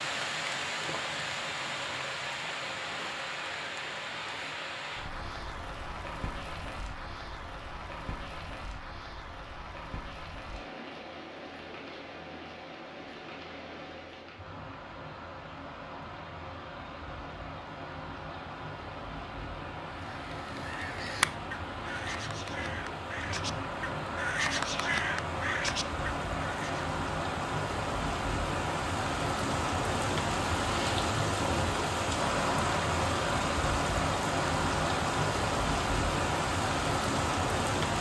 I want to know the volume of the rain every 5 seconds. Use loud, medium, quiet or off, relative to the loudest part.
medium, quiet, quiet, quiet, medium, loud, loud, loud.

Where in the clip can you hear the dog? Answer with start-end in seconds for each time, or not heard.
not heard.